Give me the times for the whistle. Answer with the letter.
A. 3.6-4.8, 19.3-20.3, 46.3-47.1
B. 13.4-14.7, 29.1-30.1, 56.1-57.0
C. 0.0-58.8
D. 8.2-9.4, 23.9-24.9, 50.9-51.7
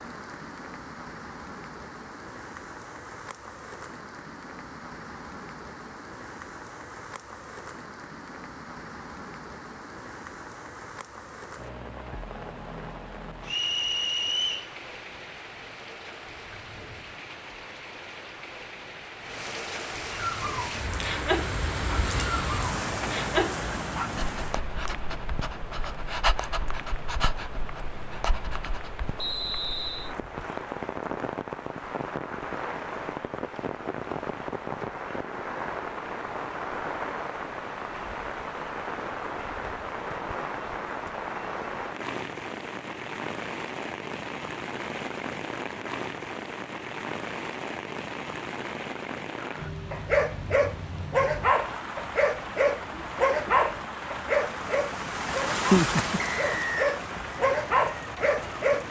B.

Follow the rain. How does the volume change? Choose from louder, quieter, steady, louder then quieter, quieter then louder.
louder.